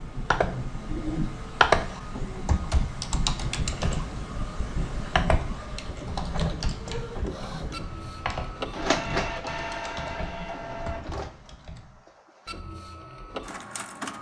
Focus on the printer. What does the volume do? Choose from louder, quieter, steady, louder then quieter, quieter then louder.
louder then quieter.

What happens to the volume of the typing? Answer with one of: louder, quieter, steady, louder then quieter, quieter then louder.
quieter.